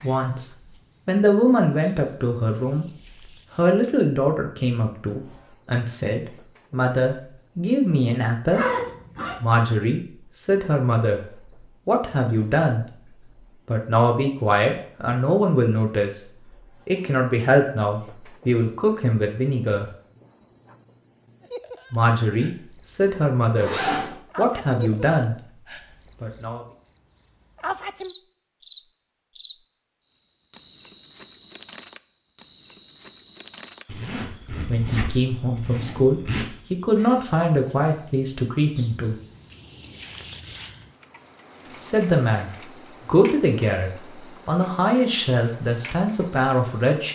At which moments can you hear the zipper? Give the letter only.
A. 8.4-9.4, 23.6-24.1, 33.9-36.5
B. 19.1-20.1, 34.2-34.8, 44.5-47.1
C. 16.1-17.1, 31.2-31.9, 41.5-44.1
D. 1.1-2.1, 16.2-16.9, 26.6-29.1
A.